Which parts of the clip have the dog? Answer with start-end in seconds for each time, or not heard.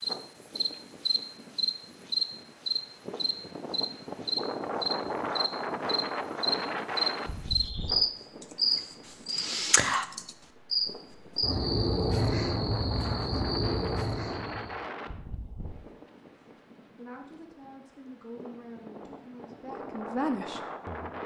not heard.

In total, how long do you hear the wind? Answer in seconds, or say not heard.
21 s.